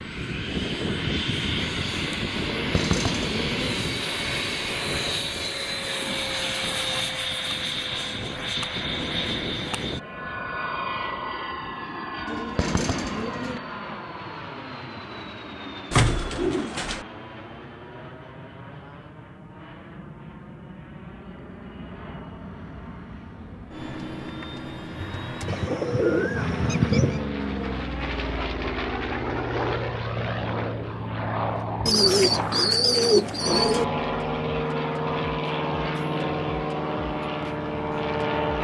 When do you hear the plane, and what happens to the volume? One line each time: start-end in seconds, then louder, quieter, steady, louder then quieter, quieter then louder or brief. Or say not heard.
0.0-38.5 quieter then louder.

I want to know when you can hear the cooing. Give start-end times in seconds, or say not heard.
2.5-3.8, 12.2-13.6, 15.9-17.1, 25.4-27.2, 31.9-33.9.